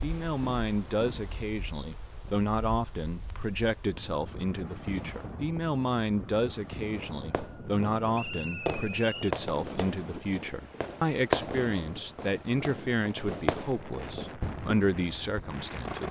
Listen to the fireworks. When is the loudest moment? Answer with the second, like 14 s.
11 s.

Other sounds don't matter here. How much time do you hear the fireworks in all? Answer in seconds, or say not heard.
10 s.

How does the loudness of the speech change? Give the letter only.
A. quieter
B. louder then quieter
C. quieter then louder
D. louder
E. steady
E.